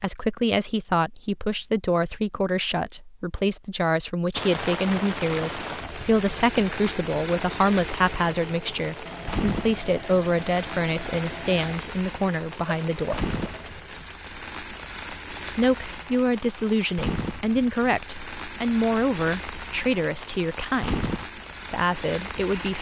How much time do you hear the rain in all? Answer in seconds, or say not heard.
18 s.